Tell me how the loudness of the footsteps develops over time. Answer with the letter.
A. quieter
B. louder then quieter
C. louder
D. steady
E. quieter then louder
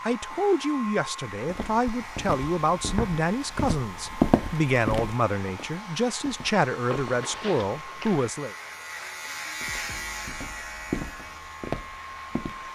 B.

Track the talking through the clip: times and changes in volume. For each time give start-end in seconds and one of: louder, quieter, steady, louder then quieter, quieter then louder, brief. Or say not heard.
0.0-8.6 steady.